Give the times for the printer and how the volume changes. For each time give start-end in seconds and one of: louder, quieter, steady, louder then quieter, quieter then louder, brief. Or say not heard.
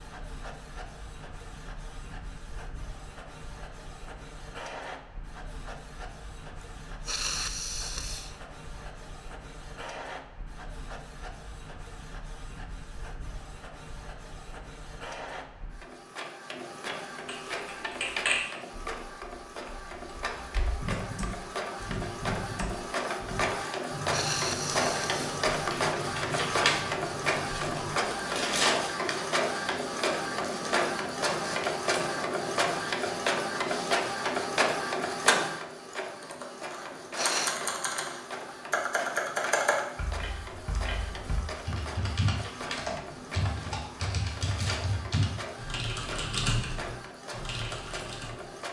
0.0-48.6 louder then quieter.